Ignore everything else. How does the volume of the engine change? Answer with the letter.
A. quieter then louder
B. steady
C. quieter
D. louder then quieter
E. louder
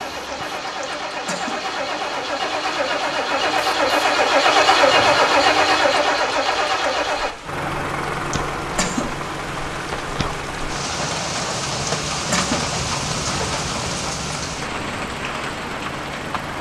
D.